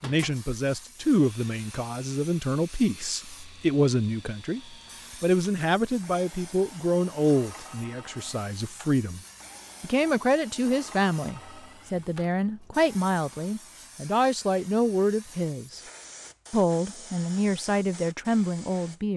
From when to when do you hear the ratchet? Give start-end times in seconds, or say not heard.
not heard.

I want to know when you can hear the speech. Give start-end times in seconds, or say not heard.
0.0-9.2, 9.8-15.8, 16.5-19.1.